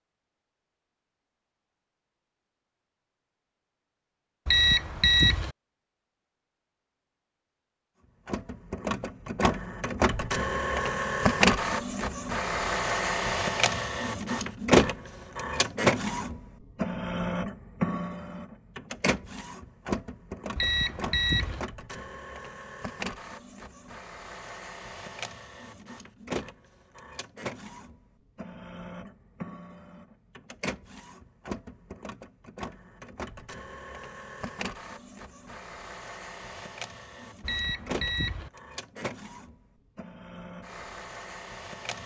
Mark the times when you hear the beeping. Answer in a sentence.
The beeping can be heard from 4.5 to 5.5 s, from 20.6 to 21.6 s and from 37.4 to 38.5 s.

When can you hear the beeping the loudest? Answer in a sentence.
The volume of the beeping peaks at 5 seconds.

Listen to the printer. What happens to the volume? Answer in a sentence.
The volume of the printer goes down.